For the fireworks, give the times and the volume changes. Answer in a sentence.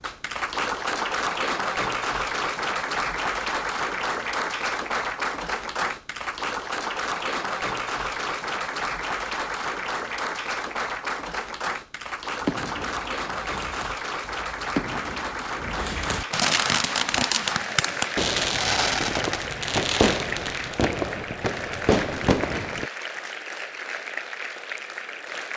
You can hear the fireworks from 12.4 to 22.9 s, getting louder.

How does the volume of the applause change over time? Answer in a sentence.
The volume of the applause goes down.